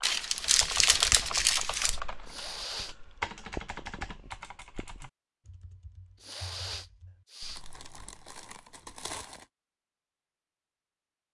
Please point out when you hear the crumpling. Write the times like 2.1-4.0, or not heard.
0.0-2.0, 7.5-9.4.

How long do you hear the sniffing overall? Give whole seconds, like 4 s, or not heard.
2 s.